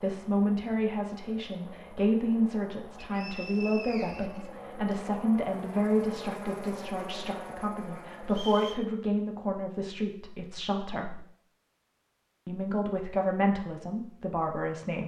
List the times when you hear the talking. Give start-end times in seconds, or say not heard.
0.0-11.2, 12.4-15.0.